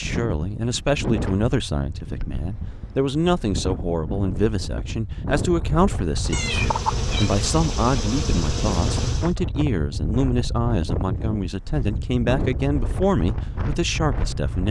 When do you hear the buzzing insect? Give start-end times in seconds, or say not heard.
6.2-9.3.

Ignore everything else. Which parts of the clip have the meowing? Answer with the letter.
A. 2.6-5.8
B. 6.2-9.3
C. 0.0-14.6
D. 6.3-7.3
D.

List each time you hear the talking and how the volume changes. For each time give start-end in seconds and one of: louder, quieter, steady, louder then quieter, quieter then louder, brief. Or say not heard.
0.0-14.6 steady.